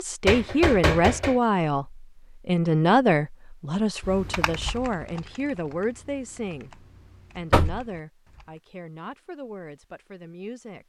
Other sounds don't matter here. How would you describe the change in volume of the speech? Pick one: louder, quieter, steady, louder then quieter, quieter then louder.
quieter.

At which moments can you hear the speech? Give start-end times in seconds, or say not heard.
0.0-10.8.